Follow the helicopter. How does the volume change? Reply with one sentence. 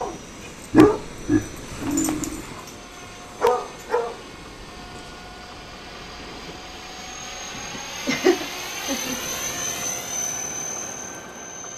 The loudness of the helicopter goes up.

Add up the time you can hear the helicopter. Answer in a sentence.
You can hear the helicopter for 12 seconds altogether.